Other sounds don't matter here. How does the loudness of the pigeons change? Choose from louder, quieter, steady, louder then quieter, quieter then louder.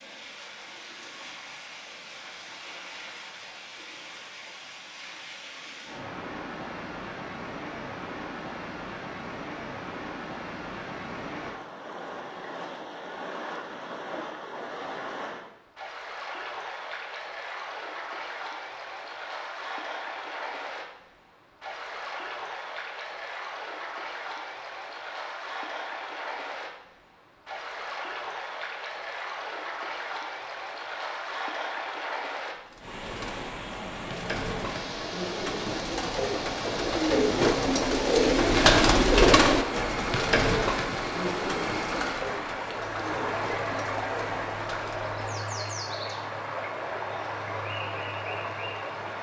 louder then quieter.